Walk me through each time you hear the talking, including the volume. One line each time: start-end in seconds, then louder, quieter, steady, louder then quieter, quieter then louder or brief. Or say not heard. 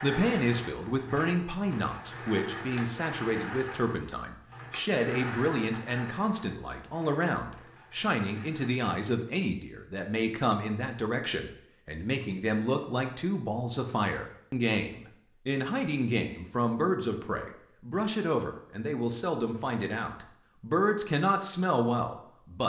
0.0-22.6 steady.